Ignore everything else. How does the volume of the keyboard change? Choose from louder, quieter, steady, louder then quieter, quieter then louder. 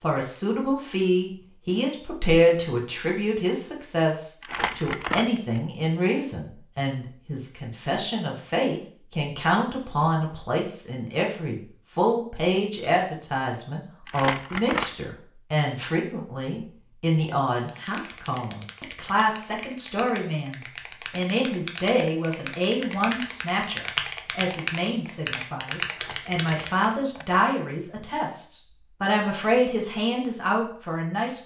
louder.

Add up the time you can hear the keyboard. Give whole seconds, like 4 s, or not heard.
10 s.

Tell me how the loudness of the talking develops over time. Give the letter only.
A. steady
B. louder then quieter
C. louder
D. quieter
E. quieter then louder
A.